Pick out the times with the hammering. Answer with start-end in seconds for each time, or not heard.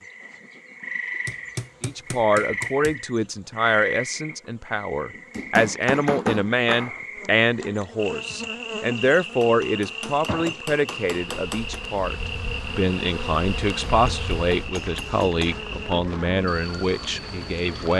1.2-3.0, 5.1-7.0, 9.4-11.8, 13.8-15.6.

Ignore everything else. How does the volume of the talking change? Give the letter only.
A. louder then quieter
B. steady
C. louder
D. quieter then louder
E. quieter
B.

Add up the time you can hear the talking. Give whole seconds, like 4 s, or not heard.
16 s.